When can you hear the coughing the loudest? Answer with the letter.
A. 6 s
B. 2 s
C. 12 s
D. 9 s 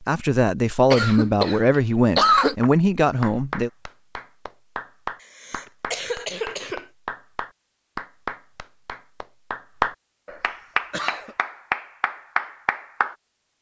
B.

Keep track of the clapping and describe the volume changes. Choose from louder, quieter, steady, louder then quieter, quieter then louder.
louder.